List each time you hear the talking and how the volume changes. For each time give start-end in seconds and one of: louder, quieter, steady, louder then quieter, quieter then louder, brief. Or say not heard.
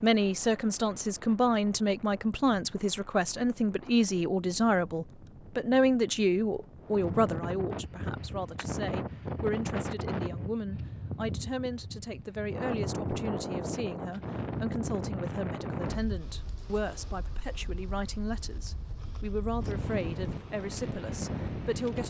0.0-22.0 quieter.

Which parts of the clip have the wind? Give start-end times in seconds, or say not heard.
0.0-22.0.